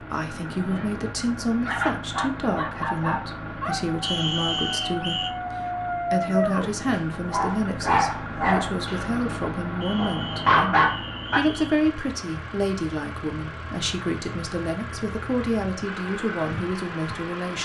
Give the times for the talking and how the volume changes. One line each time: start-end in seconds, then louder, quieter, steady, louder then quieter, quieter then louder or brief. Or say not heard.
0.0-17.6 steady.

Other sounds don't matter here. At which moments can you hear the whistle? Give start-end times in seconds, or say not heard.
4.0-5.3, 9.8-11.8.